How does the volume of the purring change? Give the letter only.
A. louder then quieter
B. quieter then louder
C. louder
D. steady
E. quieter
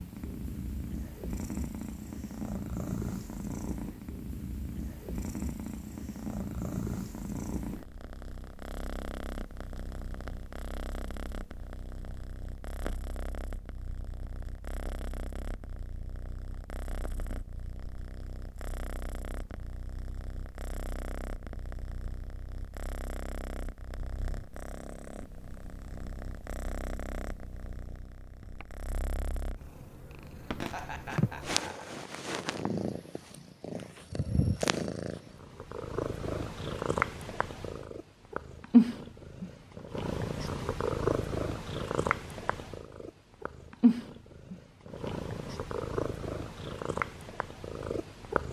B.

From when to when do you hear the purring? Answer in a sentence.
The purring can be heard from 0.0 to 48.4 s.